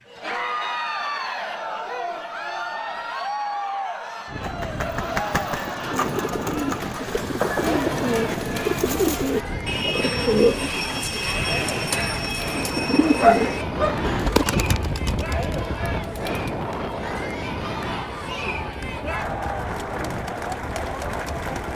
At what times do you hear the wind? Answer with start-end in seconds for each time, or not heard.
4.2-21.7.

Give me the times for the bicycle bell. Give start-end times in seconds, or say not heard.
not heard.